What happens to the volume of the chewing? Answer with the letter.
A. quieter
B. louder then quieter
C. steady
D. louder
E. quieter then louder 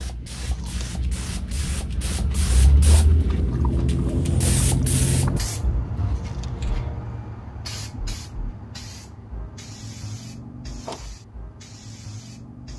B.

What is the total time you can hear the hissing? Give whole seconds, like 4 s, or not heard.
13 s.